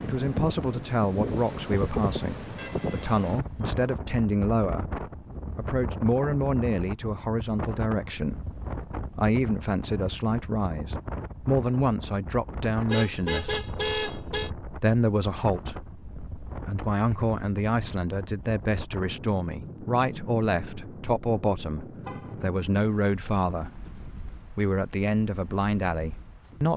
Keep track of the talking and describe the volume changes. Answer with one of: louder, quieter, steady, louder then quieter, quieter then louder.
steady.